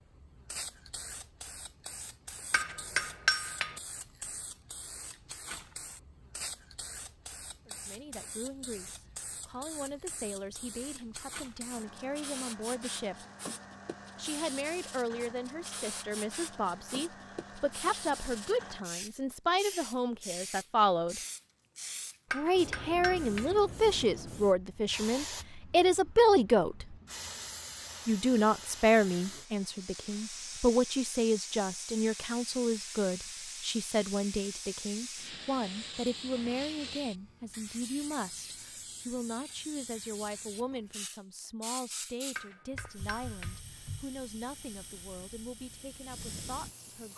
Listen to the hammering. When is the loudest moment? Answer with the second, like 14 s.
3 s.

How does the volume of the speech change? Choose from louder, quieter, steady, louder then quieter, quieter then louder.
louder then quieter.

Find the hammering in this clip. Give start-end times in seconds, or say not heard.
2.5-3.8, 22.3-23.6, 42.4-43.6.